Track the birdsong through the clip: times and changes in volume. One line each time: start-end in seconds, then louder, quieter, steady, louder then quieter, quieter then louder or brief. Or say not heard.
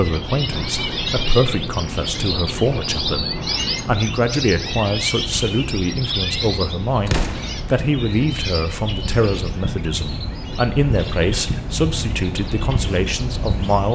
0.0-13.9 quieter.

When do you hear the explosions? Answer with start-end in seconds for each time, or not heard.
7.0-7.6.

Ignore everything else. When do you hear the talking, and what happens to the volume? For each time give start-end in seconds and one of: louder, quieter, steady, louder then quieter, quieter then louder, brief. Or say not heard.
0.0-13.9 steady.